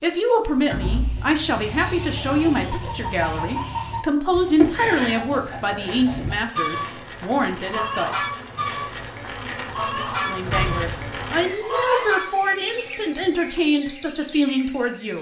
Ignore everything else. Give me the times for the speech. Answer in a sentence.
You can hear the speech from 0.0 to 8.2 s and from 9.9 to 15.1 s.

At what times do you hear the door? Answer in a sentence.
The door can be heard from 0.7 to 1.3 s and from 10.4 to 11.2 s.